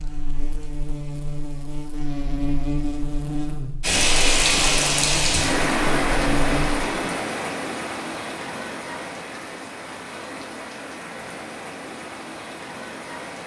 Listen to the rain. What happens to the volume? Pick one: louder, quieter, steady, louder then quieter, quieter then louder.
quieter.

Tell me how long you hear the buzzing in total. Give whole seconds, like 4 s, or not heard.
7 s.